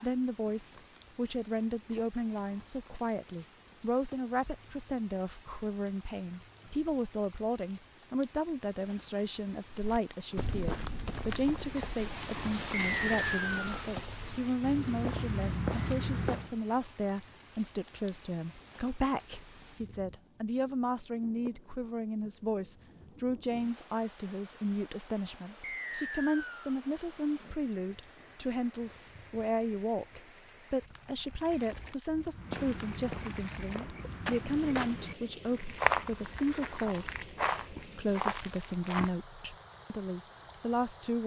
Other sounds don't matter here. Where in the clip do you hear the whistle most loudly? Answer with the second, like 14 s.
13 s.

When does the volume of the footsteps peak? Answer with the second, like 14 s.
36 s.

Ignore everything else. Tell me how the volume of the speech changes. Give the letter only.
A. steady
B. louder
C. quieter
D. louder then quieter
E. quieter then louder
A.